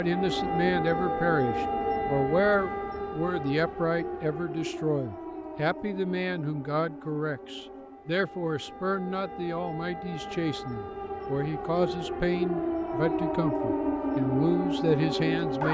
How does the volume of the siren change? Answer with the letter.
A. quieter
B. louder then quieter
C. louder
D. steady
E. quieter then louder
E.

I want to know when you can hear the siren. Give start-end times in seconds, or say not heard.
0.0-15.6.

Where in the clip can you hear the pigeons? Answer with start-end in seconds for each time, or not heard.
not heard.